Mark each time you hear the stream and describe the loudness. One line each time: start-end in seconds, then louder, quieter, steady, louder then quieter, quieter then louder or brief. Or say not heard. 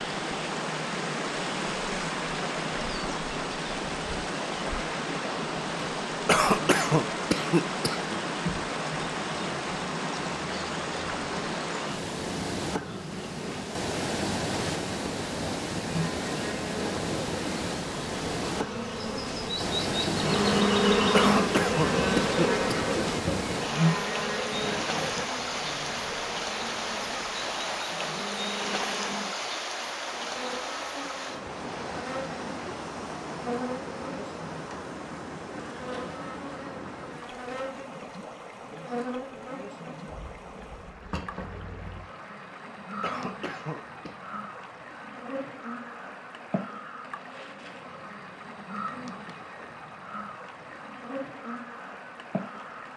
0.0-52.9 quieter.